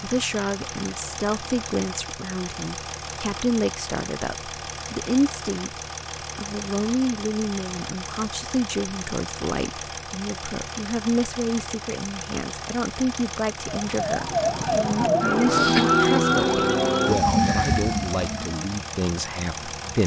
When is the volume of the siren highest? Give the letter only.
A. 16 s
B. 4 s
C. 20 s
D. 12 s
A.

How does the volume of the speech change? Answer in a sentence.
The loudness of the speech stays about the same.